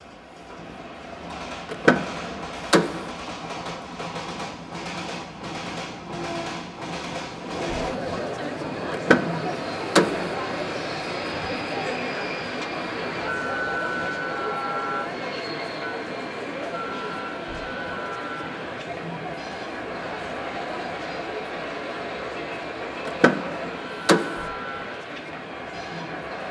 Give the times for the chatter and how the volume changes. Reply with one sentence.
You can hear the chatter from 7.3 to 26.4 s, getting quieter.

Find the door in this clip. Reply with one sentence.
The door can be heard from 1.7 to 3.1 s, from 8.9 to 10.3 s and from 23.1 to 24.4 s.